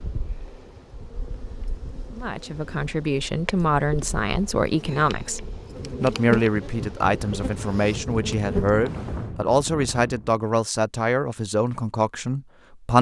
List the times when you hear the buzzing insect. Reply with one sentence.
You can hear the buzzing insect from 0.0 to 9.3 s.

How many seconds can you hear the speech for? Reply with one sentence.
You can hear the speech for 11 seconds altogether.